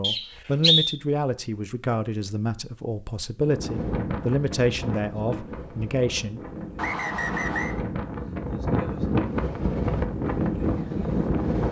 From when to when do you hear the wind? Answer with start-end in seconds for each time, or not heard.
3.4-11.6.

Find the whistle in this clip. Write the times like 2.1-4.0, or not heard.
0.0-0.9, 6.8-7.8.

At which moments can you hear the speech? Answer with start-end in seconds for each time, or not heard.
0.0-6.4.